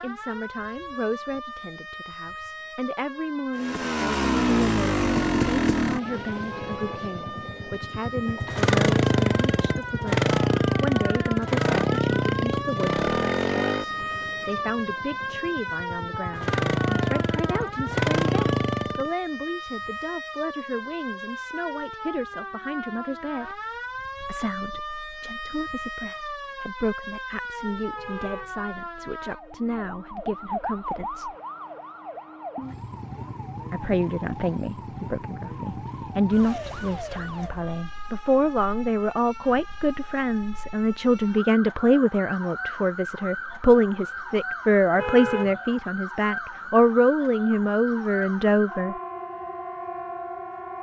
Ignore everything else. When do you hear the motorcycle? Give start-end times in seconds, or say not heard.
3.5-19.1.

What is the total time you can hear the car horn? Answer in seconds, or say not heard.
2 s.